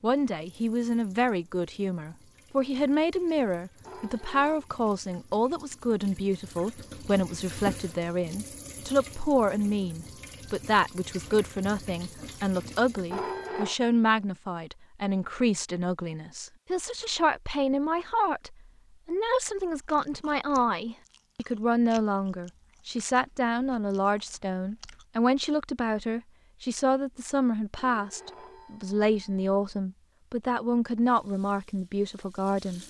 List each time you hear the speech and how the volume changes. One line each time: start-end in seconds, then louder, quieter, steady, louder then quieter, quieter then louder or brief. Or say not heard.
0.0-32.8 steady.